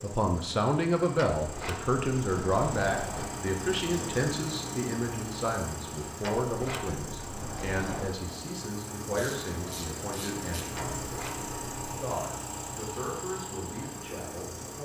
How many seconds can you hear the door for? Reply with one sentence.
You can hear the door for 5 seconds altogether.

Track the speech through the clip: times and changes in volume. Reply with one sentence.
The speech can be heard from 0.0 to 11.0 s, getting quieter; and briefly from 12.0 to 14.8 s.